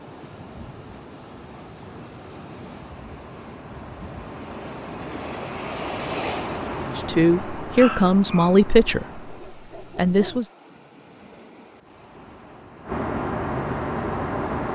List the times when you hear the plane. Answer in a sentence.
The plane can be heard from 0.0 to 9.7 s and from 11.7 to 14.7 s.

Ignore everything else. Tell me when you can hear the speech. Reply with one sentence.
You can hear the speech from 7.0 to 9.2 s and from 9.9 to 10.5 s.